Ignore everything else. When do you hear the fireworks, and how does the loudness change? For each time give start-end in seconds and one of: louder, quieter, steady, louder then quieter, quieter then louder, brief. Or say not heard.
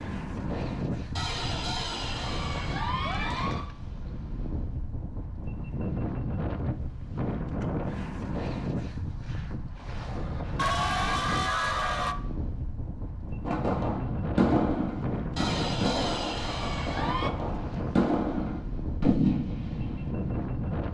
13.4-20.1 quieter then louder.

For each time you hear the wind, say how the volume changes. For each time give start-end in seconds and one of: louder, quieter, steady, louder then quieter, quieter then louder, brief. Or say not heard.
0.0-20.8 steady.